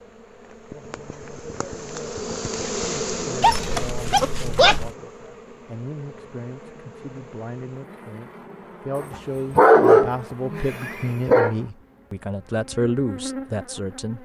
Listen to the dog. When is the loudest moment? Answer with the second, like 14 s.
10 s.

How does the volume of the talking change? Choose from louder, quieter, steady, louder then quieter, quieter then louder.
louder.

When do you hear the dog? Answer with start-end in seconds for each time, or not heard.
3.4-4.9, 8.9-11.5.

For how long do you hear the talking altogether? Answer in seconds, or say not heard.
11 s.